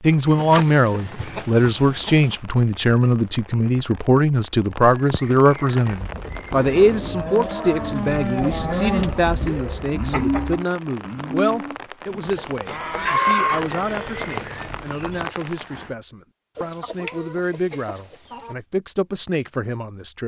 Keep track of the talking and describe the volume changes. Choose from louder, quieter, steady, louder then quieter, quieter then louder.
quieter.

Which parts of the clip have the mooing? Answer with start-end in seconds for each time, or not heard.
5.8-15.3.